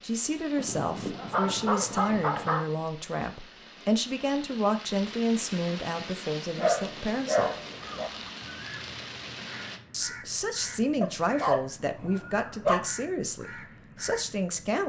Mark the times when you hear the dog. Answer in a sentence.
You can hear the dog from 0.6 to 2.6 s, from 6.5 to 8.1 s and from 11.0 to 12.8 s.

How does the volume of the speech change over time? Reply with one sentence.
The volume of the speech stays about the same.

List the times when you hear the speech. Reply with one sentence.
The speech can be heard from 0.0 to 7.5 s and from 9.9 to 14.8 s.